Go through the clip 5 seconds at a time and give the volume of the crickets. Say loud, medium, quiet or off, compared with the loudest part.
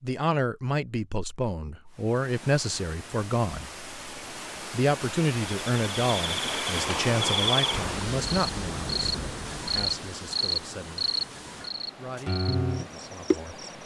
off, loud, loud.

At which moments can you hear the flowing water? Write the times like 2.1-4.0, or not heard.
1.9-13.8.